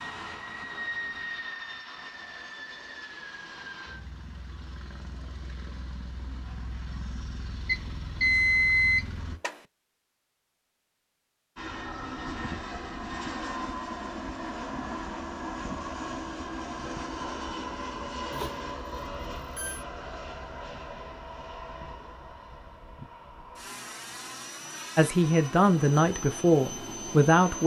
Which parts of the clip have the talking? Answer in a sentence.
You can hear the talking from 24.9 to 27.6 s.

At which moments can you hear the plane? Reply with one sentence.
You can hear the plane from 0.0 to 9.4 s and from 11.6 to 27.6 s.